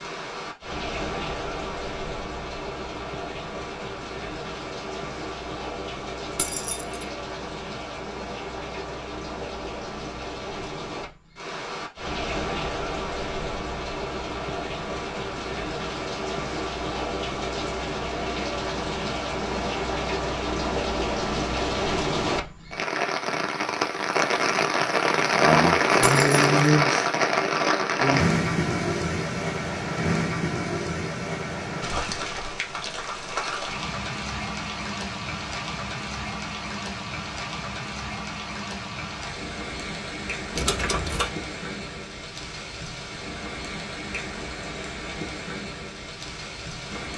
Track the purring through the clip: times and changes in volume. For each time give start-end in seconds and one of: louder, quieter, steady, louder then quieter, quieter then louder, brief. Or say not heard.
not heard.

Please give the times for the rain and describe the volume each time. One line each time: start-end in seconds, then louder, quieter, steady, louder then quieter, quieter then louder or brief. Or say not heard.
0.0-47.1 louder then quieter.